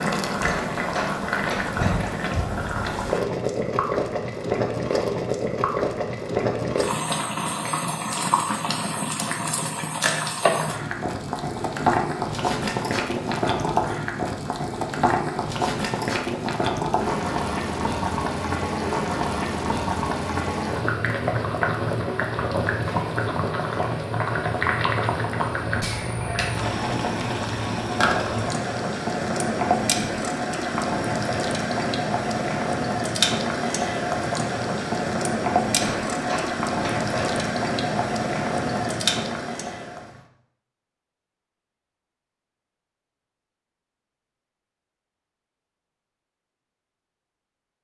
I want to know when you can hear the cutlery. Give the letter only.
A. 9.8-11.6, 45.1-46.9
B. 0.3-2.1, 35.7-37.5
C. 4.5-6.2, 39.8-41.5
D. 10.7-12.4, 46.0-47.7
B.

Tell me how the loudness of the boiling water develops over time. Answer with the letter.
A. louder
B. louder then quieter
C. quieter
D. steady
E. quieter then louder
D.